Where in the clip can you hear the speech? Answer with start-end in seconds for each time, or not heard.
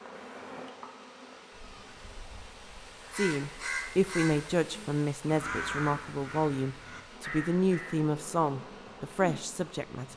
3.1-10.1.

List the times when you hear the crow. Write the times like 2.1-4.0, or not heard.
1.6-8.0.